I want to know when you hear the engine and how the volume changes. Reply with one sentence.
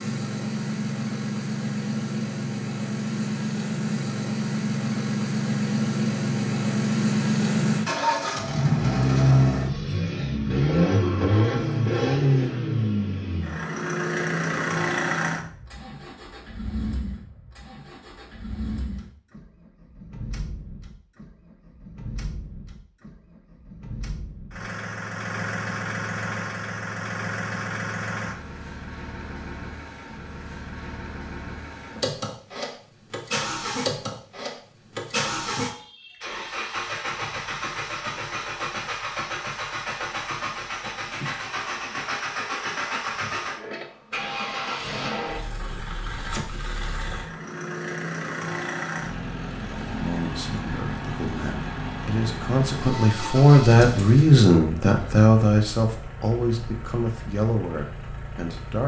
You can hear the engine from 0.0 to 58.8 s, getting quieter.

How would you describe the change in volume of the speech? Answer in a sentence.
The loudness of the speech goes up, then down.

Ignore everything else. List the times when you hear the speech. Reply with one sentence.
You can hear the speech from 49.6 to 58.8 s.